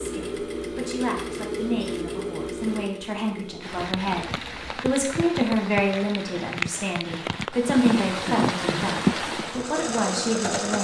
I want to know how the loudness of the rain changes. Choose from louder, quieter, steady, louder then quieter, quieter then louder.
louder.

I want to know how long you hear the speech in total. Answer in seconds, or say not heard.
11 s.